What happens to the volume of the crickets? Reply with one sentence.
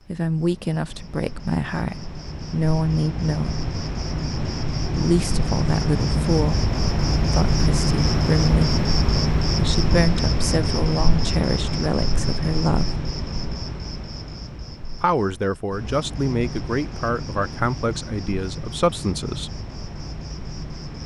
The volume of the crickets goes up, then down.